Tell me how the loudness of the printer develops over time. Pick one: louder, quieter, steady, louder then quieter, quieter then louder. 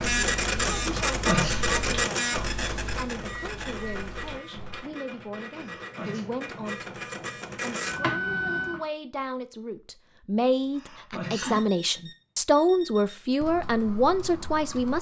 quieter then louder.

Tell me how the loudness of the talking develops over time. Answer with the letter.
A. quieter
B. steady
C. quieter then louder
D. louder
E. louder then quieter
D.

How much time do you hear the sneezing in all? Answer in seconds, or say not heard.
2 s.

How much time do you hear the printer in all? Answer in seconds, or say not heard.
9 s.